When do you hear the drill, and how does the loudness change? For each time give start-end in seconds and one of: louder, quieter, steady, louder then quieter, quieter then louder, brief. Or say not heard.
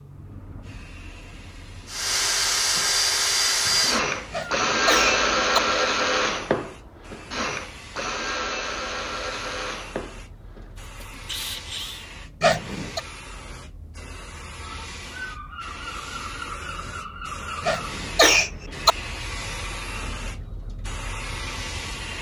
1.9-12.1 quieter.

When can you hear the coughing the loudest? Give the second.
18 s.